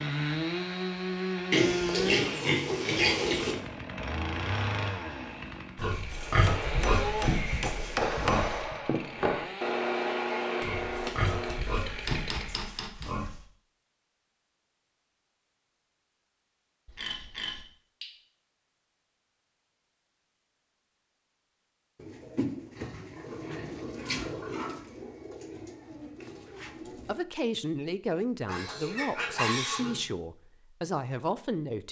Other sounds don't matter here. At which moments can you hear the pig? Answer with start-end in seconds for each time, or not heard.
1.5-3.5, 5.8-8.8, 10.6-13.4, 16.9-18.1, 22.8-24.7, 28.4-30.0.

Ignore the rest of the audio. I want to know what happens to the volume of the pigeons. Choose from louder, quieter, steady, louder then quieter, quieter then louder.
quieter.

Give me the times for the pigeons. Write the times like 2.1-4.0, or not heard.
21.9-27.2.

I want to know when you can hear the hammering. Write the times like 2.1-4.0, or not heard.
6.1-13.3.